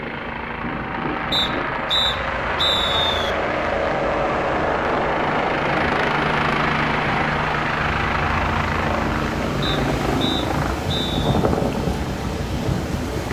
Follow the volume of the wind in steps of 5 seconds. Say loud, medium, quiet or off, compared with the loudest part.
medium, medium, loud.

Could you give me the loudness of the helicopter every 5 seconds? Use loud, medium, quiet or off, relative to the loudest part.
loud, loud, medium.